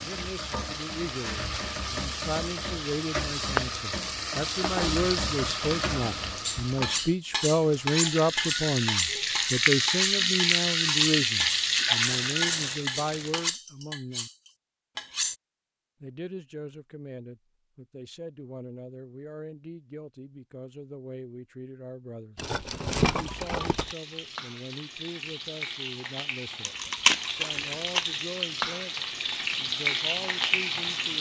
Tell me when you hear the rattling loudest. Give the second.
23 s.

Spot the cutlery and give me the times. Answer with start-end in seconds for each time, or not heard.
6.4-15.3.